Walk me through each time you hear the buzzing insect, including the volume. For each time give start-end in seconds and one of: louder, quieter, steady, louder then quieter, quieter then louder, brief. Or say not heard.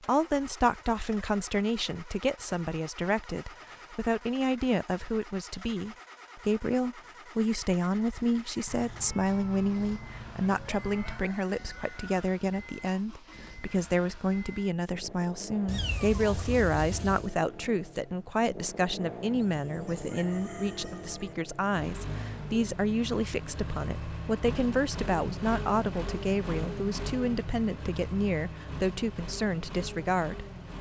not heard.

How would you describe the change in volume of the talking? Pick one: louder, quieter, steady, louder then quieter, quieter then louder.
steady.